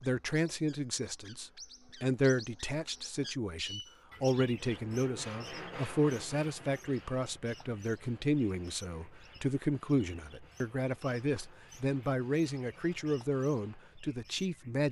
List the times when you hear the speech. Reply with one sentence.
The speech can be heard from 0.0 to 14.8 s.